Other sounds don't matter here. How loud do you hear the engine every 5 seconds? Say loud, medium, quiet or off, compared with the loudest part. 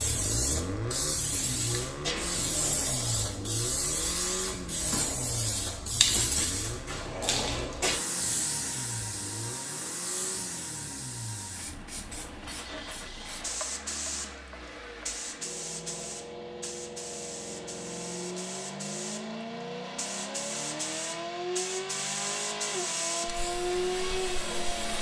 loud, medium, medium, medium, loud.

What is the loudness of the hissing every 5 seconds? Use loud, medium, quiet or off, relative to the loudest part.
loud, loud, medium, medium, medium.